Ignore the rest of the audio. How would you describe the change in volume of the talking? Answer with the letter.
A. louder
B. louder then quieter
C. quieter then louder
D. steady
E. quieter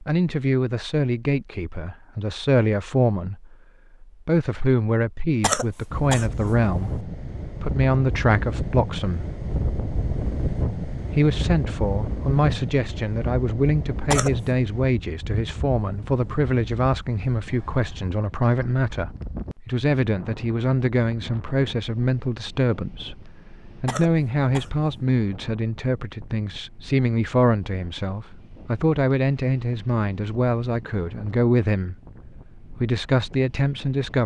D.